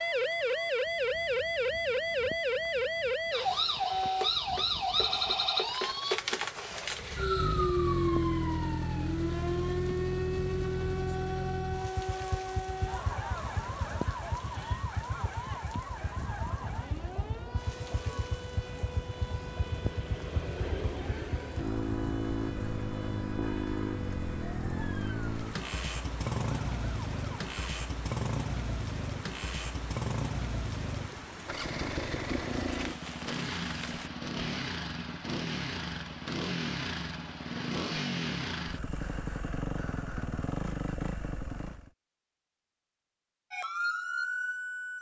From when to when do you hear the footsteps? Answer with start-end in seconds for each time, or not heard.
not heard.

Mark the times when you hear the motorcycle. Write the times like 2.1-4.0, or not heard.
7.0-41.9.